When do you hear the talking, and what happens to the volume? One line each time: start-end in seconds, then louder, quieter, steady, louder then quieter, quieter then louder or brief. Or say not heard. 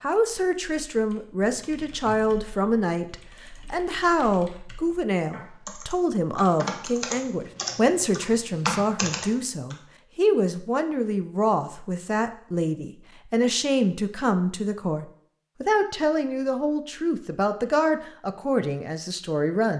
0.0-19.7 steady.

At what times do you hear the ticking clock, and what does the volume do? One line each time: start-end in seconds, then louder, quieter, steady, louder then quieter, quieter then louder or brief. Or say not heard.
not heard.